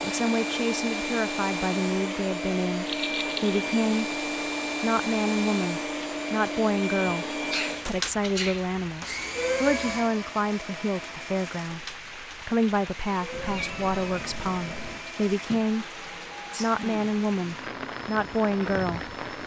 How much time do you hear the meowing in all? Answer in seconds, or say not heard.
2 s.